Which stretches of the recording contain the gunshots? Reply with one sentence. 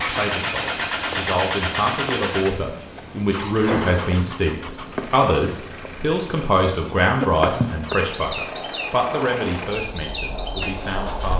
You can hear the gunshots from 3.6 to 4.2 s.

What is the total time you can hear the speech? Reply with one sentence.
You can hear the speech for 11 seconds altogether.